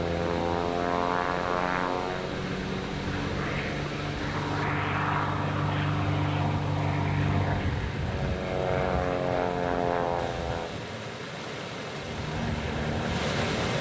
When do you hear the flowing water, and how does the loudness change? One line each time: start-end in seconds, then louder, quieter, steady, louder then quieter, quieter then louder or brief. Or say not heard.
0.0-13.7 steady.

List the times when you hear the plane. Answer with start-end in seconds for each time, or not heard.
0.0-10.8, 12.0-13.7.